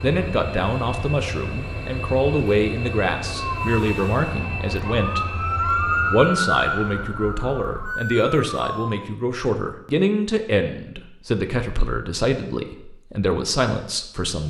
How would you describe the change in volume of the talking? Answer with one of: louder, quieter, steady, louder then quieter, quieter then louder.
steady.